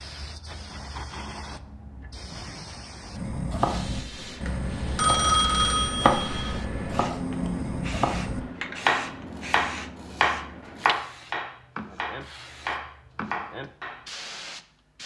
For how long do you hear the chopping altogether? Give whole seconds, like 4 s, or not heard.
11 s.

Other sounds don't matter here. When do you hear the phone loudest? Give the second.
5 s.